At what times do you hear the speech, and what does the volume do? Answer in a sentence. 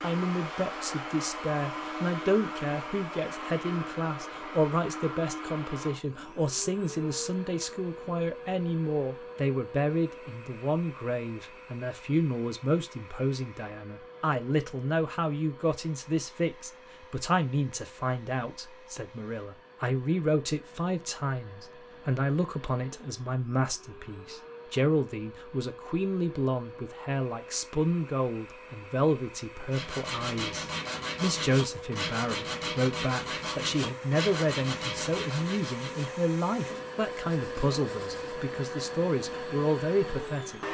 The speech can be heard from 0.0 to 40.6 s, at a steady volume.